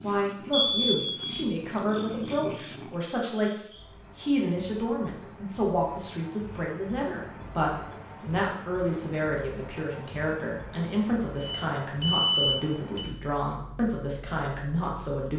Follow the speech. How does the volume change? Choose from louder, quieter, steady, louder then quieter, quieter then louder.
steady.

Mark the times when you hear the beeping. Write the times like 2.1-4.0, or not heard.
0.5-1.2, 11.4-13.1.